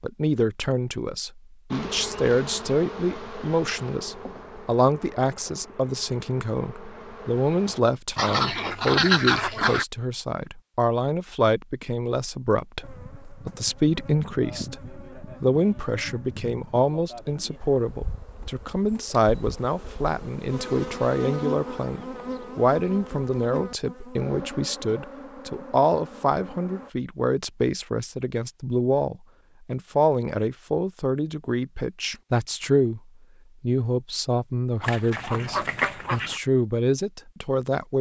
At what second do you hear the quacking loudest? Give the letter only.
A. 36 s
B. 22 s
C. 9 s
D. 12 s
C.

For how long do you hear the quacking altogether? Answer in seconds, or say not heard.
3 s.